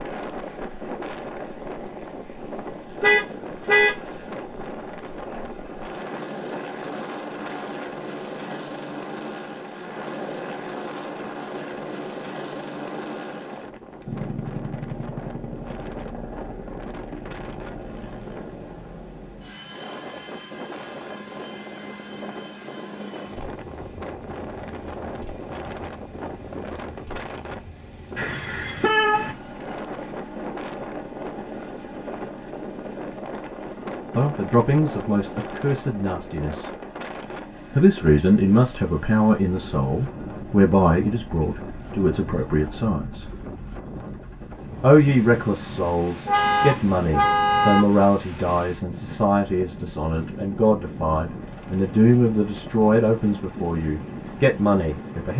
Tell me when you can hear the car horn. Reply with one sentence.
You can hear the car horn from 3.0 to 4.0 s, from 28.1 to 29.4 s and from 46.2 to 47.8 s.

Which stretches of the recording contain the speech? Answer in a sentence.
The speech can be heard from 34.1 to 36.7 s, from 37.7 to 43.2 s and from 44.8 to 55.3 s.